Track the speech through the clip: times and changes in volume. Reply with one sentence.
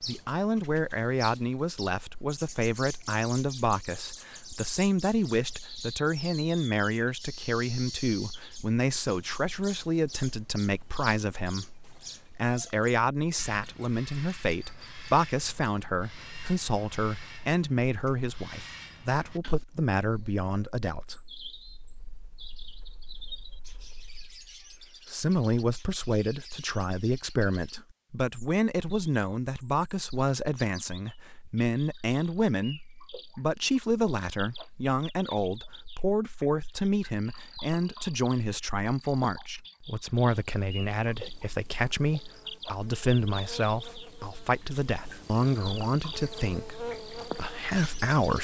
You can hear the speech from 0.0 to 48.3 s, at a steady volume.